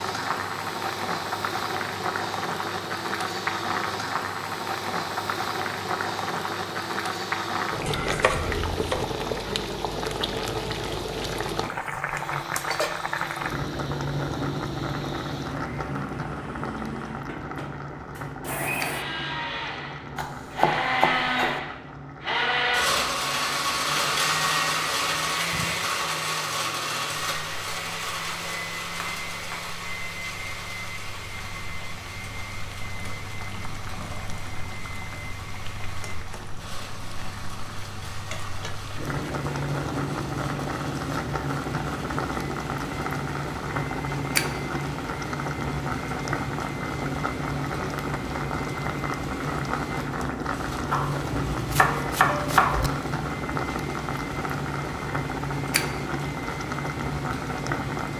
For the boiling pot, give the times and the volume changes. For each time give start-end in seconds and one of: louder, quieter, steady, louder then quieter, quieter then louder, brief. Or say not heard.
0.0-58.1 quieter then louder.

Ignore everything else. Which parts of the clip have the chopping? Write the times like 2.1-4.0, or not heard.
7.8-9.1, 20.1-21.6, 50.9-52.9.